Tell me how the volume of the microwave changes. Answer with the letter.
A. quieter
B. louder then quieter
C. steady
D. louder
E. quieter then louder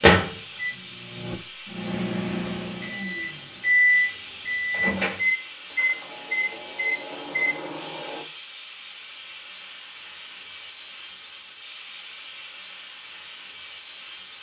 B.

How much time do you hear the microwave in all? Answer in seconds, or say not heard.
8 s.